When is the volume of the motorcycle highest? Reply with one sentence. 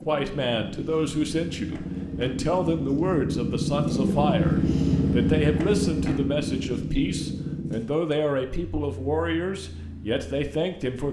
The volume of the motorcycle peaks at 5 seconds.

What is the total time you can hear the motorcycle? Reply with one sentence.
The motorcycle can be heard for 11 seconds in total.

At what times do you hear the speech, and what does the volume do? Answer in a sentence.
You can hear the speech from 0.1 to 11.0 s, at a steady volume.